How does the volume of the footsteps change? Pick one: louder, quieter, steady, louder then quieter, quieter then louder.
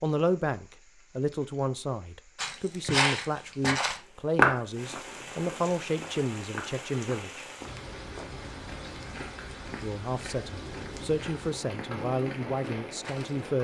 quieter.